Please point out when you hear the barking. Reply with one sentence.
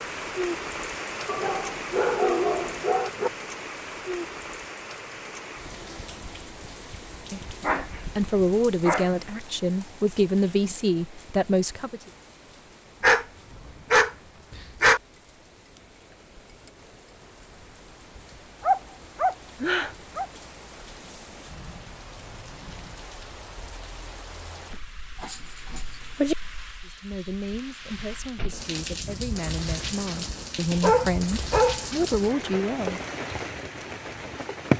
You can hear the barking from 1.2 to 3.3 s, from 7.3 to 9.2 s, from 13.0 to 15.0 s, from 18.6 to 20.2 s, from 25.2 to 26.4 s and from 30.7 to 31.9 s.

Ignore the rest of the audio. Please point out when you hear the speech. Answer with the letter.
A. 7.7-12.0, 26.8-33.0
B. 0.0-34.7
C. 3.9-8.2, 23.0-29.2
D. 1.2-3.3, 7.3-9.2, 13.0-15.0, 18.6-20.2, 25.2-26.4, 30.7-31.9
A.